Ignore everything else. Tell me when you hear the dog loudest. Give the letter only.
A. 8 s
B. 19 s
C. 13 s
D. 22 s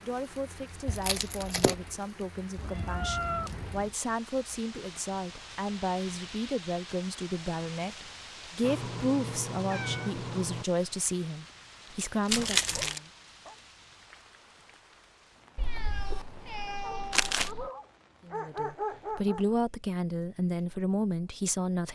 B.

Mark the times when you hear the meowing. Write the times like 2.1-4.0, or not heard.
2.5-4.0, 8.6-10.7, 15.6-17.7.